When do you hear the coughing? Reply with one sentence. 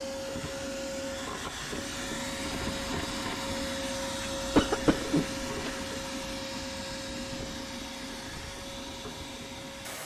The coughing can be heard from 4.5 to 5.8 s.